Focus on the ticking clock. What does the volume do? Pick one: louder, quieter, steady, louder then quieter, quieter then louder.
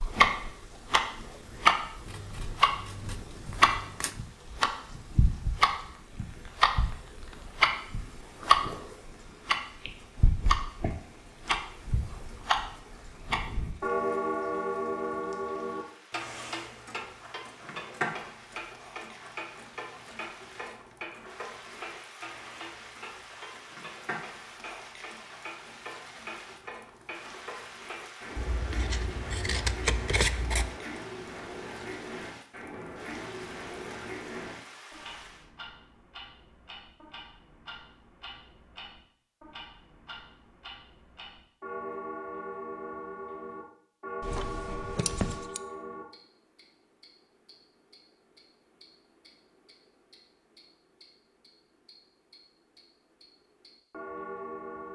quieter.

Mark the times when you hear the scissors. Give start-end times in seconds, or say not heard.
2.0-4.2, 28.4-30.8, 44.2-45.6.